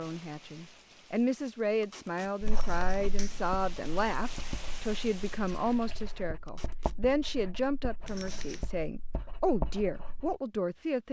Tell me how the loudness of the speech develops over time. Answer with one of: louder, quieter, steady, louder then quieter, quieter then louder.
steady.